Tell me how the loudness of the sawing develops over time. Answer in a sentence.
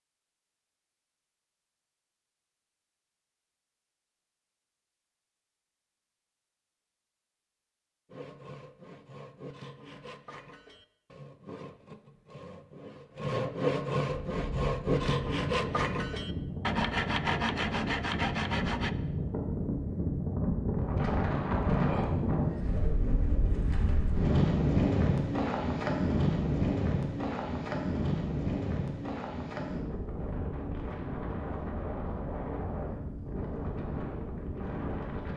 The loudness of the sawing goes up.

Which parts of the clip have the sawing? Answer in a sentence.
The sawing can be heard from 8.1 to 18.9 s.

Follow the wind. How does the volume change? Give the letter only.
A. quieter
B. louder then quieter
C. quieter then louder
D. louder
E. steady
B.